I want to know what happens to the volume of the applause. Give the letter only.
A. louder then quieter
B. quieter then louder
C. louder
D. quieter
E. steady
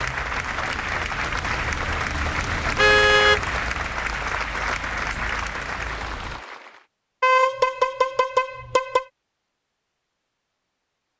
E.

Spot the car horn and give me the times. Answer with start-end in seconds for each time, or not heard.
2.8-3.4, 7.2-9.1.